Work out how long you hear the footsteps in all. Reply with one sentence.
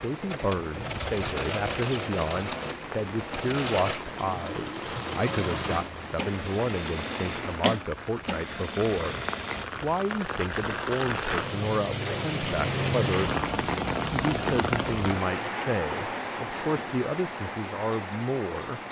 The footsteps can't be heard in this clip.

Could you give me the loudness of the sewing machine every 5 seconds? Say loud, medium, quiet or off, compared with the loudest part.
loud, loud, off, off.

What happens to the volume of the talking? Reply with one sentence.
The volume of the talking stays about the same.